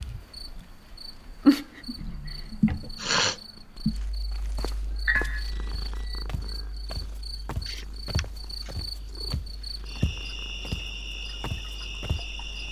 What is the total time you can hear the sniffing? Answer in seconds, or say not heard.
2 s.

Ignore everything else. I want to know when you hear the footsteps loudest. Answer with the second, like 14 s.
10 s.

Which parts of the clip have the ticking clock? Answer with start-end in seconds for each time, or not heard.
not heard.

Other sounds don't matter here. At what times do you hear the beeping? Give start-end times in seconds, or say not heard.
5.0-6.2.